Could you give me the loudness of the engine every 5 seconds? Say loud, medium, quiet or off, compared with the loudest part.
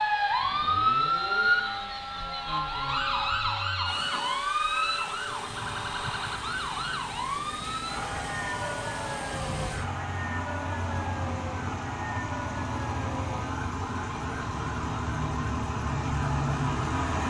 quiet, medium, medium, loud.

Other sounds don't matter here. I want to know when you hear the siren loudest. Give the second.
1 s.